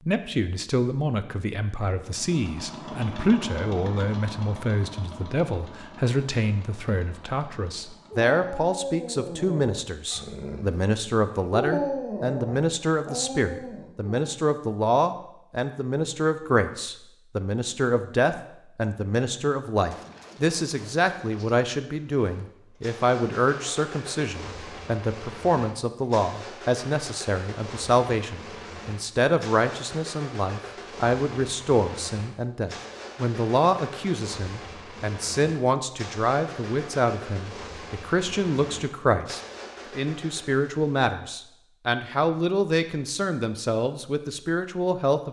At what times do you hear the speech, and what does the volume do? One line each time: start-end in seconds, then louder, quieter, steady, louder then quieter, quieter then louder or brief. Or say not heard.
0.1-45.2 steady.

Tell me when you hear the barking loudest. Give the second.
12 s.